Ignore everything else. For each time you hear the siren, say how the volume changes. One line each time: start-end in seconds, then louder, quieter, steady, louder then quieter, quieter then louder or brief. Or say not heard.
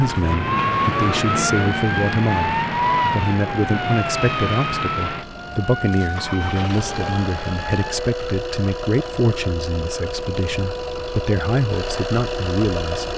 0.0-13.1 quieter.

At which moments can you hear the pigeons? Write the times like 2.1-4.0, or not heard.
not heard.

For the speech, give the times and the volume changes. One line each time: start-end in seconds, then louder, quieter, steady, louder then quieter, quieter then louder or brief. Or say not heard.
0.0-13.1 steady.